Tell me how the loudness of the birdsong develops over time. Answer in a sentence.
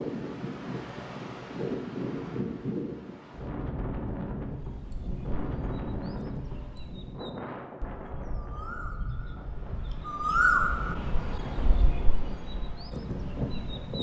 The loudness of the birdsong goes up, then down.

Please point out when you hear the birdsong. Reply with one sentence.
You can hear the birdsong from 4.5 to 13.9 s.